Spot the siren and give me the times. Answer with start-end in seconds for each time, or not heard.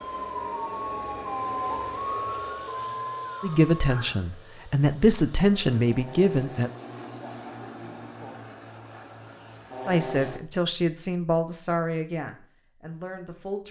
0.0-4.2.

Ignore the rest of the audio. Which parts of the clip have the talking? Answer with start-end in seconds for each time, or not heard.
3.4-6.7, 9.8-13.6.